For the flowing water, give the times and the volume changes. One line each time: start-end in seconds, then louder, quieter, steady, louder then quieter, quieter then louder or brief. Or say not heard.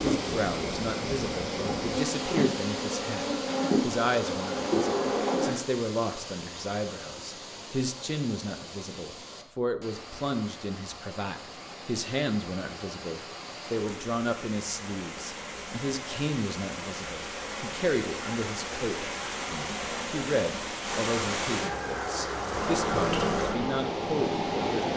0.0-24.9 quieter then louder.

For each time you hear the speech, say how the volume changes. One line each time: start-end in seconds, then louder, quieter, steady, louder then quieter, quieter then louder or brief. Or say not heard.
0.0-24.9 steady.